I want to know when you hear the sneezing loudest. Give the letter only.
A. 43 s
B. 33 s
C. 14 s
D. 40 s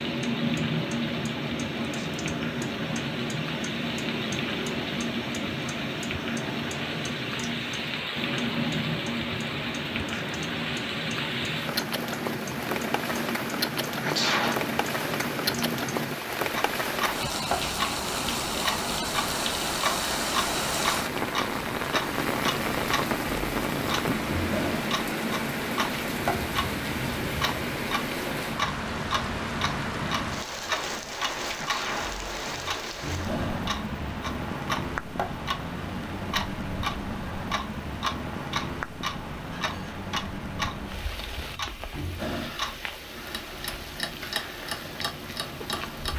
C.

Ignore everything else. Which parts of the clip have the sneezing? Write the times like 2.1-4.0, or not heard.
14.0-14.7, 31.6-32.2.